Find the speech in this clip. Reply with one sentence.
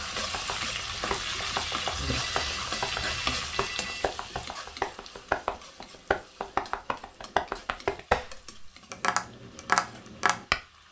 You can't hear the speech here.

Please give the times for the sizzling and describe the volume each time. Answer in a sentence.
The sizzling can be heard from 0.0 to 10.8 s, getting quieter.